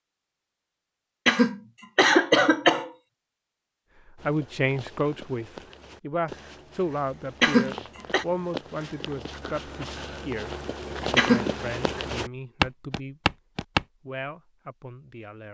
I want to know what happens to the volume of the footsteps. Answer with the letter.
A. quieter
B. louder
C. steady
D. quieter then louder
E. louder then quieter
B.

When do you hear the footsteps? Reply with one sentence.
The footsteps can be heard from 4.2 to 13.8 s.